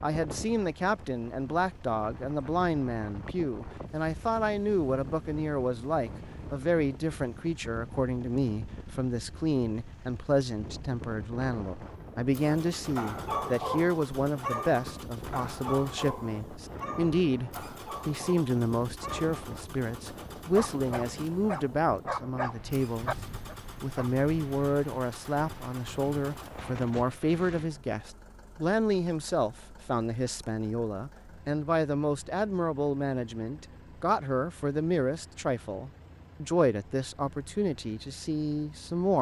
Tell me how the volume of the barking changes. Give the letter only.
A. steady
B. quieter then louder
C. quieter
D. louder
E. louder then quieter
B.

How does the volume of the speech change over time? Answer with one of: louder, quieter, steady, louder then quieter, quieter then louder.
steady.